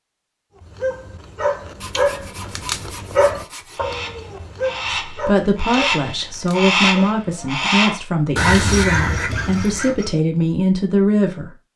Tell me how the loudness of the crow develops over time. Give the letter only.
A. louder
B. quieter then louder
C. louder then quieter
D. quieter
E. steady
A.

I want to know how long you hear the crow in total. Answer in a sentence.
The crow can be heard for 6 seconds in total.